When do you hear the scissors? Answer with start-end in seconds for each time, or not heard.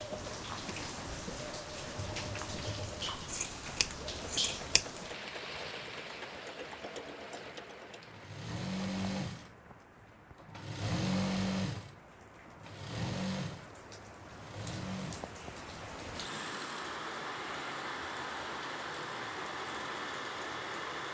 3.2-4.8.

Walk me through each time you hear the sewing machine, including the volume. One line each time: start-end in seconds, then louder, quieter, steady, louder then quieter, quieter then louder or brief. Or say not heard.
0.0-21.1 louder then quieter.